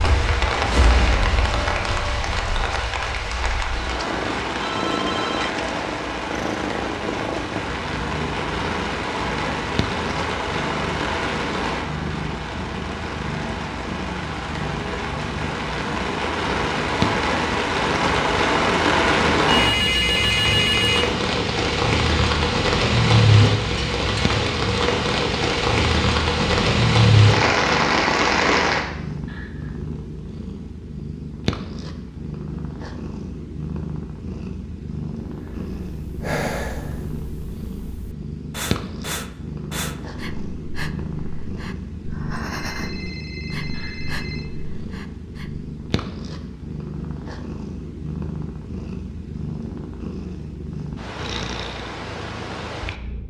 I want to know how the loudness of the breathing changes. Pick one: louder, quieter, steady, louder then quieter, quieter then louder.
quieter.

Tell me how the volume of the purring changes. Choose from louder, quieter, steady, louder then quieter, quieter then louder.
steady.